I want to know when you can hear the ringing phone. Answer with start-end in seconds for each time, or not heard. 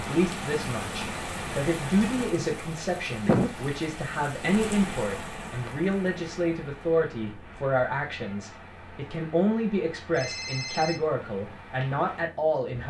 10.1-11.0.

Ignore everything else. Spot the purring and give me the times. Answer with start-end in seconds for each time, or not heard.
not heard.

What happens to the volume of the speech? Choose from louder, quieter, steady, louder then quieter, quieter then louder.
steady.